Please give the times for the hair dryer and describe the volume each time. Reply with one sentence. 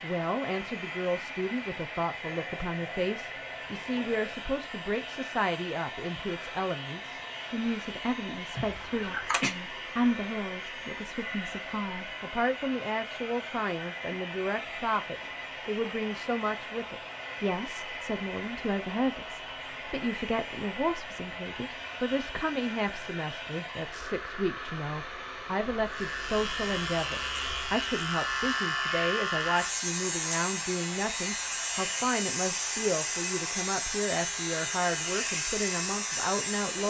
The hair dryer can be heard from 0.0 to 36.8 s, at a steady volume.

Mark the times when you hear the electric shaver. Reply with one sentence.
You can hear the electric shaver from 25.9 to 36.8 s.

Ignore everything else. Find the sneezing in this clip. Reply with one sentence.
You can hear the sneezing from 8.6 to 9.6 s.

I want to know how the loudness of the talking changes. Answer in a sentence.
The loudness of the talking stays about the same.